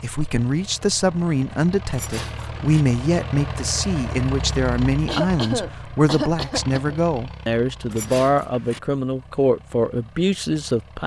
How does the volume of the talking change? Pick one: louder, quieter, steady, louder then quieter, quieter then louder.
steady.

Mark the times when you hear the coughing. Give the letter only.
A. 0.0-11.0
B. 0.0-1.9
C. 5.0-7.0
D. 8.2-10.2
C.